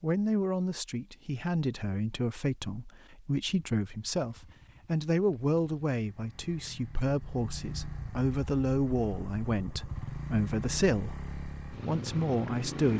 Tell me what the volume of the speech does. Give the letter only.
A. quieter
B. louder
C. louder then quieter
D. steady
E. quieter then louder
D.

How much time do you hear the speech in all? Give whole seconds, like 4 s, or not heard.
13 s.